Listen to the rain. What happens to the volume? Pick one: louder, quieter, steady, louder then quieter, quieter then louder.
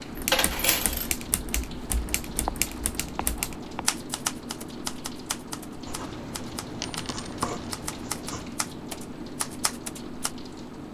steady.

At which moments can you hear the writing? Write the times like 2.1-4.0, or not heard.
2.2-3.9, 5.8-8.5.